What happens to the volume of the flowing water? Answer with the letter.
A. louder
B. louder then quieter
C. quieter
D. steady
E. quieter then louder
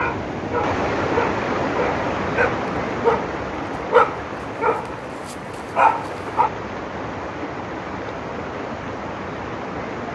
C.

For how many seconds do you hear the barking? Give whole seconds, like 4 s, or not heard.
6 s.